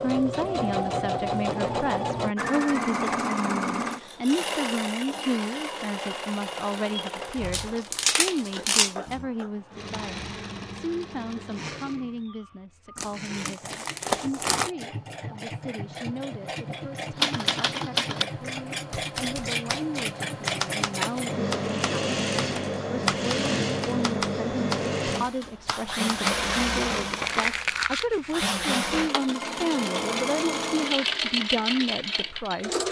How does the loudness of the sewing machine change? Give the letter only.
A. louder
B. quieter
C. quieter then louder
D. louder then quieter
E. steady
C.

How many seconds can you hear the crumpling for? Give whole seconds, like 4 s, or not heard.
5 s.